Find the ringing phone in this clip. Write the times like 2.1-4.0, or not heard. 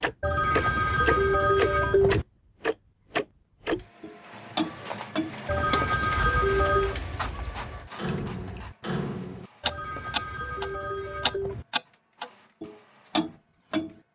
0.2-2.2, 5.5-7.0, 9.6-11.7.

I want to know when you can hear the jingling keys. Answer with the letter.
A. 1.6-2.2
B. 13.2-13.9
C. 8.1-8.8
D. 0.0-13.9
C.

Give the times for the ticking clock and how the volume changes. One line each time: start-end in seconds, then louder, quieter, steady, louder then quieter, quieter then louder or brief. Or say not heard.
0.0-13.9 quieter then louder.